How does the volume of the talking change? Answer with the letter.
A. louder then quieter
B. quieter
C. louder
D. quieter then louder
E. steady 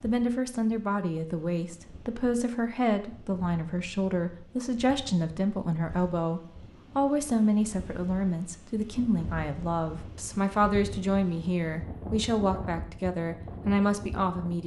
E.